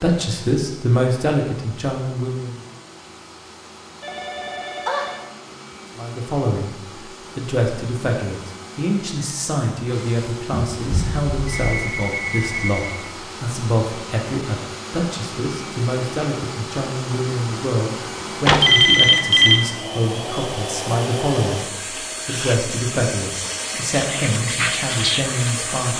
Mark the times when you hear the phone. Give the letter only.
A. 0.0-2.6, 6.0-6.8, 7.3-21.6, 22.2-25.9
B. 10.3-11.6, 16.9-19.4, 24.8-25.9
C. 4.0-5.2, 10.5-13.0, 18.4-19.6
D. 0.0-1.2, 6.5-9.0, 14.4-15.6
C.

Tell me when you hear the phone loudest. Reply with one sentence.
The volume of the phone peaks at 19 seconds.